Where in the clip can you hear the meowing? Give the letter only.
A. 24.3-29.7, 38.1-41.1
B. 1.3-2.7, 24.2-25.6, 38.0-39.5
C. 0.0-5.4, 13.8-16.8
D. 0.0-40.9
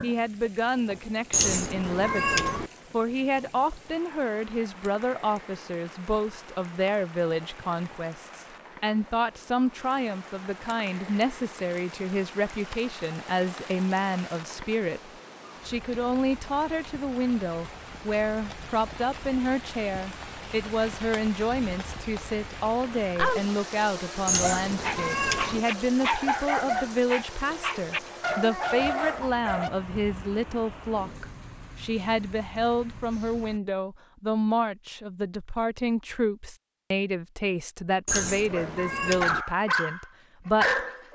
B.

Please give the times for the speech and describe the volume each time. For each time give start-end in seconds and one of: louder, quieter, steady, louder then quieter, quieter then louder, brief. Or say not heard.
0.0-40.9 steady.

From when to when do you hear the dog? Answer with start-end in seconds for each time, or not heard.
24.3-29.7, 38.1-41.1.